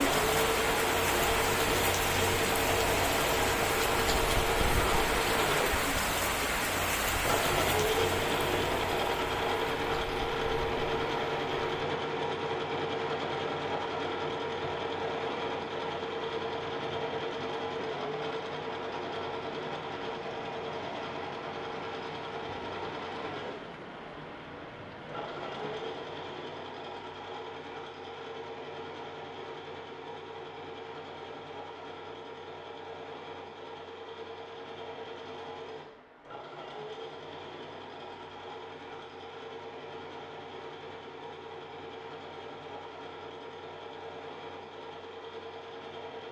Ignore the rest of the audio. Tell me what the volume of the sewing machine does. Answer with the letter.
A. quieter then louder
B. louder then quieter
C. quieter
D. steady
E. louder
C.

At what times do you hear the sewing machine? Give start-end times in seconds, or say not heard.
0.0-46.2.